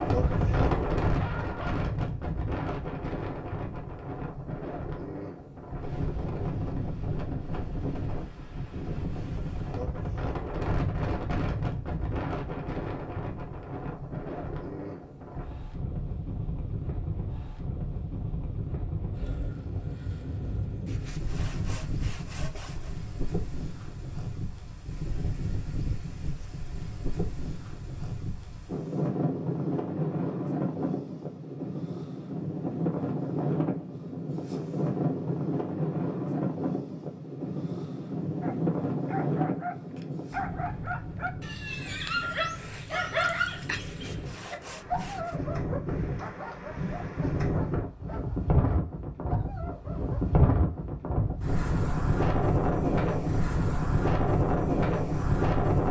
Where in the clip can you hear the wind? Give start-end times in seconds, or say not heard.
0.0-55.8.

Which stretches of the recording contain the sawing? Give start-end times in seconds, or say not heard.
20.9-22.9, 43.9-45.4.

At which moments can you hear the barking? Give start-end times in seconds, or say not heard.
0.1-1.9, 38.4-50.2.